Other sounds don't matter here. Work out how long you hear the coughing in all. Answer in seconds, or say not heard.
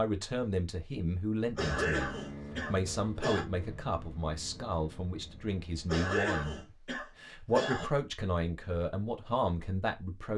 4 s.